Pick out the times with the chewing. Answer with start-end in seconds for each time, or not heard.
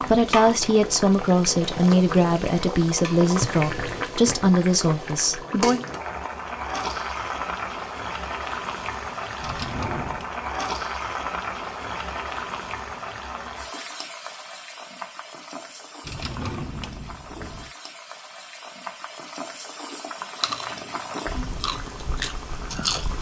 20.4-23.1.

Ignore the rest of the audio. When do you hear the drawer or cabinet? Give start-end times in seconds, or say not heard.
3.3-4.5, 9.4-10.3, 16.0-17.7.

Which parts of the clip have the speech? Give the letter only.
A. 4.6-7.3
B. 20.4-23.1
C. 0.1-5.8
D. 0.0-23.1
C.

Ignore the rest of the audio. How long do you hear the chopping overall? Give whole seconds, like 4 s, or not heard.
not heard.